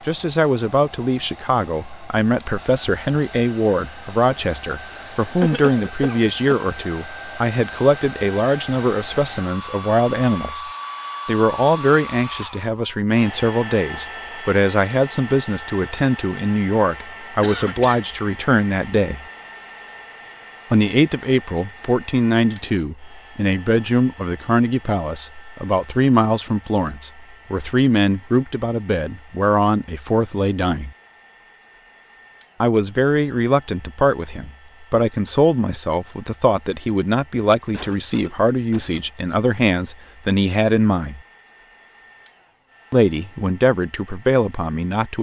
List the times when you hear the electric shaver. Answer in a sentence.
You can't hear the electric shaver here.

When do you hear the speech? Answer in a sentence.
You can hear the speech from 0.1 to 10.6 s, from 11.2 to 19.2 s, from 20.7 to 30.9 s, from 32.6 to 41.2 s and from 42.9 to 45.1 s.